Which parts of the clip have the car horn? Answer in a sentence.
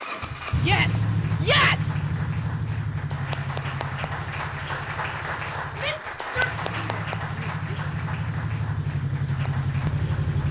You can't hear the car horn here.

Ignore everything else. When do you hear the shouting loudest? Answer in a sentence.
The volume of the shouting peaks at 2 seconds.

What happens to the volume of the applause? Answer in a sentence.
The volume of the applause goes up, then down.